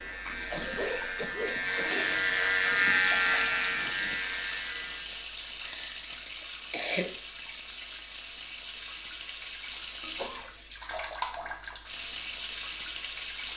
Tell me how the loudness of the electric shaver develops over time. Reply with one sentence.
The volume of the electric shaver goes up, then down.